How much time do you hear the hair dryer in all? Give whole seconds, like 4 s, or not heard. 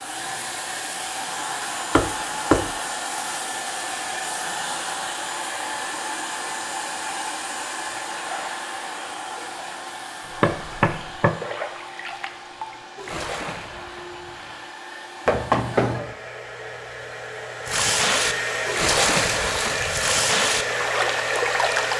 22 s.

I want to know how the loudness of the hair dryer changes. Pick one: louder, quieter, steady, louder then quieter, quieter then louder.
quieter then louder.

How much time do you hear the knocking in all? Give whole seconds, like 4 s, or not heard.
3 s.